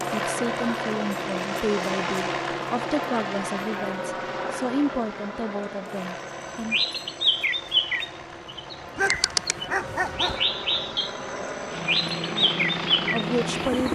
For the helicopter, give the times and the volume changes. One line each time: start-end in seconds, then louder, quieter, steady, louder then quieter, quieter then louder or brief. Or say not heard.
0.0-13.8 quieter then louder.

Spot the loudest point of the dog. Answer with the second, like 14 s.
9 s.